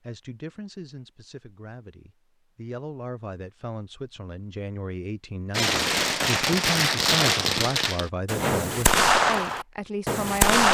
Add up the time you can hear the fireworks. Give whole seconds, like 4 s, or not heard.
5 s.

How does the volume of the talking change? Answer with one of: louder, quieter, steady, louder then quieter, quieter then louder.
louder.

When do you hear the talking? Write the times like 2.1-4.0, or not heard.
0.1-10.7.